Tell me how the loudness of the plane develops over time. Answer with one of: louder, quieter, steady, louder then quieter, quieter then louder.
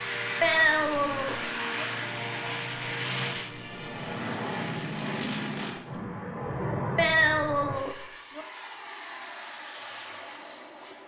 quieter.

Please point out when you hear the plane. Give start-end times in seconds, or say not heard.
0.0-11.0.